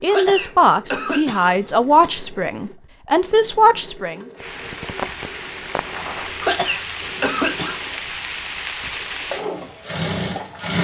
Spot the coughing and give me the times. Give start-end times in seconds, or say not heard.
0.1-2.1, 6.4-7.8.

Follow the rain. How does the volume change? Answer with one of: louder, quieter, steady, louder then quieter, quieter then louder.
steady.